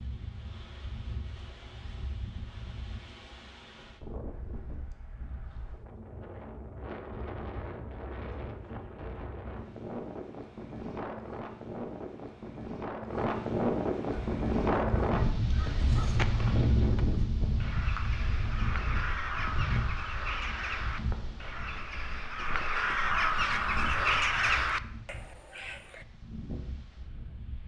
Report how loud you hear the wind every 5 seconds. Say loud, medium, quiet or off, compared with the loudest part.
quiet, medium, loud, loud, quiet, quiet.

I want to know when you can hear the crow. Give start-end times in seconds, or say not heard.
14.1-26.1.